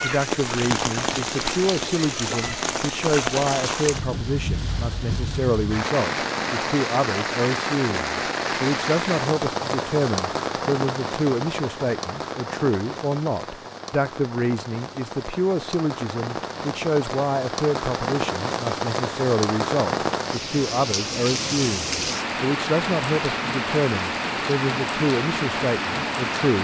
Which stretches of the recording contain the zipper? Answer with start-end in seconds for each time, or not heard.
not heard.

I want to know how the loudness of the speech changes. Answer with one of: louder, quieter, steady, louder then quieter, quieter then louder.
steady.